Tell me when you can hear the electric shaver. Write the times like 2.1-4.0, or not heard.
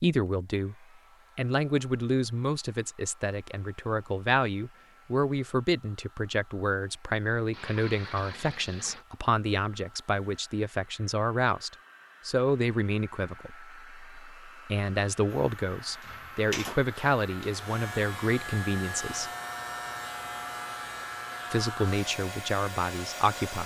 15.2-23.6.